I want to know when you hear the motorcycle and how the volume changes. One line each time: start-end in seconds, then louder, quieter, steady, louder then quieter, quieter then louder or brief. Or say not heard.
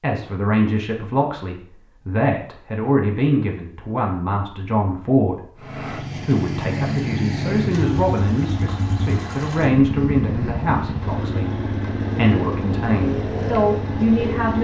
5.5-14.5 steady.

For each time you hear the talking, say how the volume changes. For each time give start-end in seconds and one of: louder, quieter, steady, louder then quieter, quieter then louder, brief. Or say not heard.
0.0-14.5 steady.